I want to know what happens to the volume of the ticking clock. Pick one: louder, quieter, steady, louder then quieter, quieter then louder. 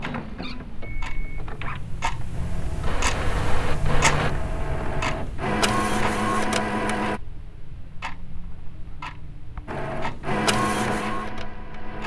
louder then quieter.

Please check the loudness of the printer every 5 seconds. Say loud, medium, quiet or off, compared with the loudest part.
medium, loud, loud.